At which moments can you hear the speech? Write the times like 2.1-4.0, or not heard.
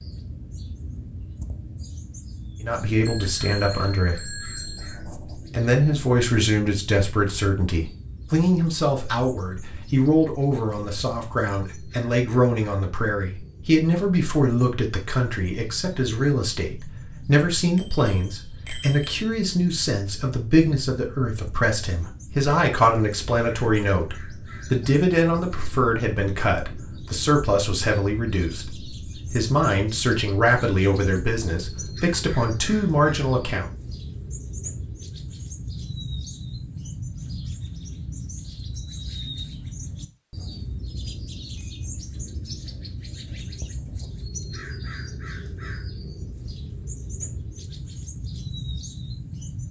2.6-4.3, 5.5-33.6.